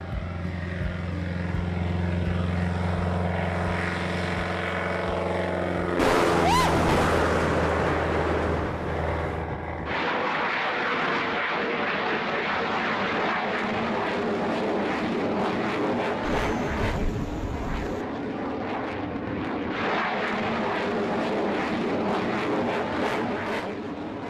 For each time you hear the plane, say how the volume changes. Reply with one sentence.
You can hear the plane from 0.0 to 24.2 s, at a steady volume.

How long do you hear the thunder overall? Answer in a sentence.
The thunder can be heard for 5 seconds in total.